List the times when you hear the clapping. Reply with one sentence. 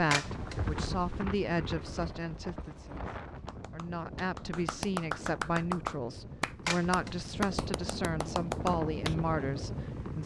You can hear the clapping from 3.4 to 9.2 s.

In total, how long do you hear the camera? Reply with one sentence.
You can hear the camera for 2 seconds altogether.